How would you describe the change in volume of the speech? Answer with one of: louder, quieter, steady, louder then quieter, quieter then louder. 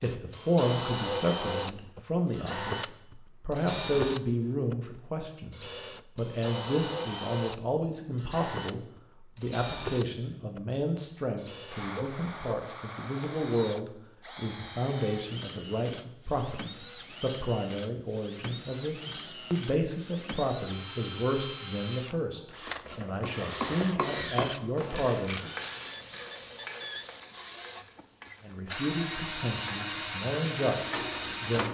steady.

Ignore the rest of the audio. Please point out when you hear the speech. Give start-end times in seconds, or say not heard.
0.0-25.4, 28.4-31.6.